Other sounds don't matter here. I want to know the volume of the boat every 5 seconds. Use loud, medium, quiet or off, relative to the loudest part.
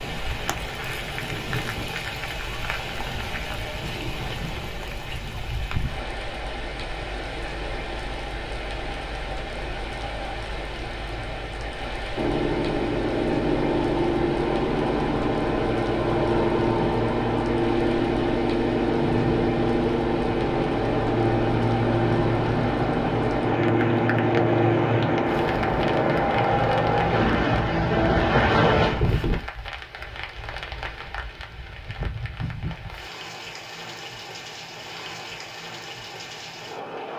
off, off, loud, loud, loud, loud, off, off.